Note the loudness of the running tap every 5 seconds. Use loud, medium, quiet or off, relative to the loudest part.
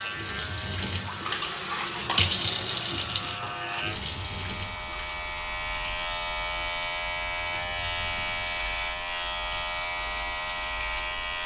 loud, quiet, quiet.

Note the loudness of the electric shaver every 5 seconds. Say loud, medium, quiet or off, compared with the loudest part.
medium, loud, loud.